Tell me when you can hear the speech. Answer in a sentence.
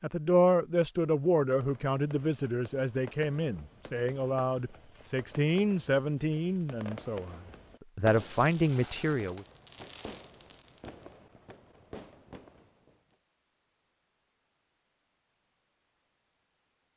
You can hear the speech from 0.0 to 9.4 s.